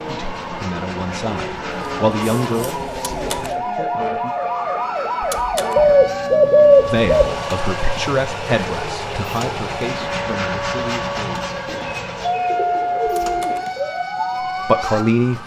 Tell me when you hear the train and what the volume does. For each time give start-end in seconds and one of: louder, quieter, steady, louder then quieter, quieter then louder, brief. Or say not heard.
0.0-15.4 louder.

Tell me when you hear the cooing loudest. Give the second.
7 s.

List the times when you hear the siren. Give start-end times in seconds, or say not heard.
0.0-15.4.